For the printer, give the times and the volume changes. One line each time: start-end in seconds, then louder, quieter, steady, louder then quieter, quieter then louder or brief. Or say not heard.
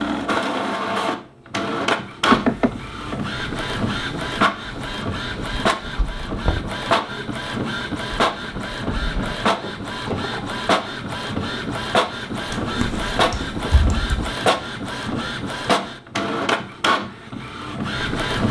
0.0-18.4 steady.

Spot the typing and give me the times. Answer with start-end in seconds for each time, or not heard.
12.5-14.3.